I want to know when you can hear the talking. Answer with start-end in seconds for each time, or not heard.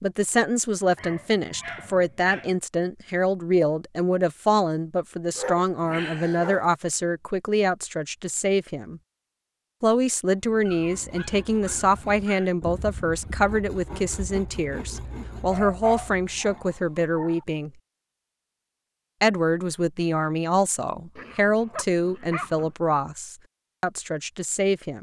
0.0-9.0, 9.8-17.7, 19.2-24.9.